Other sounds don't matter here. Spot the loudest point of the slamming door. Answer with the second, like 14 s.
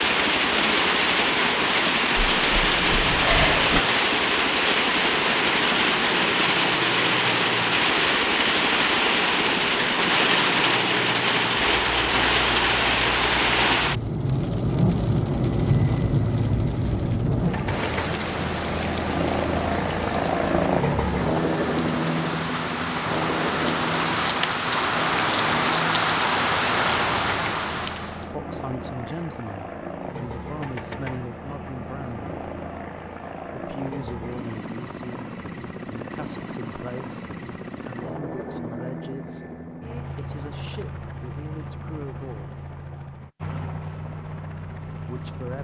3 s.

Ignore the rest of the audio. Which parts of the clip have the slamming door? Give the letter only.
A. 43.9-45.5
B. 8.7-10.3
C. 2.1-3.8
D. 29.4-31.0
C.